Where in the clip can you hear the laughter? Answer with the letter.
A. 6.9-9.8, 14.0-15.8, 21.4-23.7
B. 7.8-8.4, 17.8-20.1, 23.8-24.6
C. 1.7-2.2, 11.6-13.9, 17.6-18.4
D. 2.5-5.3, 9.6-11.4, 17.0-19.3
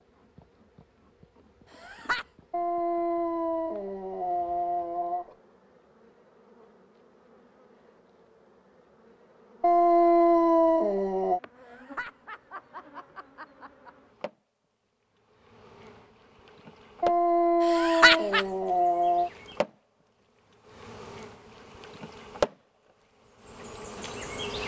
C.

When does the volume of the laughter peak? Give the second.
18 s.